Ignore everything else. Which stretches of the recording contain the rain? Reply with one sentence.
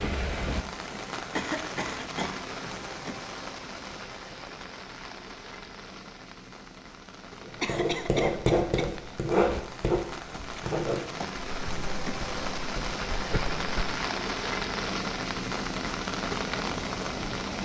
You can hear the rain from 0.0 to 17.6 s.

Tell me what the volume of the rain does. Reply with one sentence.
The volume of the rain goes down, then up.